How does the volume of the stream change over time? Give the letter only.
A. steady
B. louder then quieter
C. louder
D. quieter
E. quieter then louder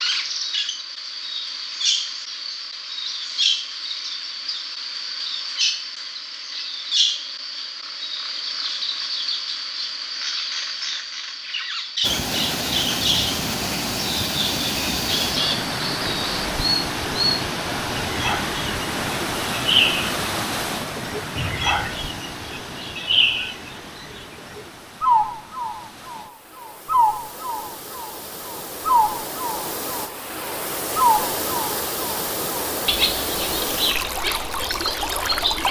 E.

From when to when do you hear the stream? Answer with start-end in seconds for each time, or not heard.
12.0-35.6.